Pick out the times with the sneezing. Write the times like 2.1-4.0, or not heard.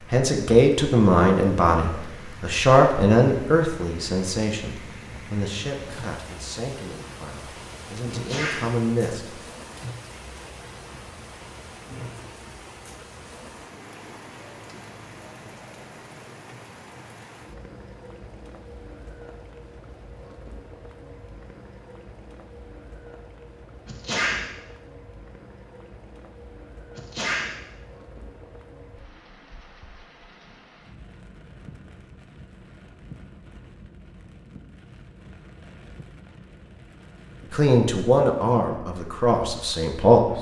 8.1-8.7, 23.9-24.4, 26.9-27.5.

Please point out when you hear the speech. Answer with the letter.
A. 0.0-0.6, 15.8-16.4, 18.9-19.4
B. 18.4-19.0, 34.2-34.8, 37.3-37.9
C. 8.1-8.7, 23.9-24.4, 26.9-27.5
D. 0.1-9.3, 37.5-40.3
D.